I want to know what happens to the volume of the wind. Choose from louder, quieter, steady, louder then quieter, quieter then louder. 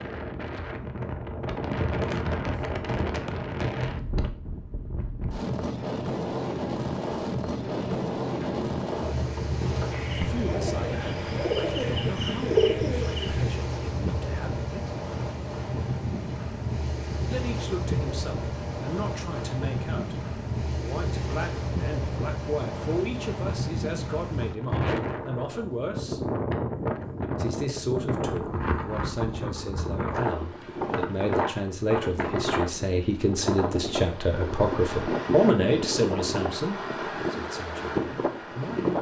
steady.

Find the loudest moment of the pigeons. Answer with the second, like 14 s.
13 s.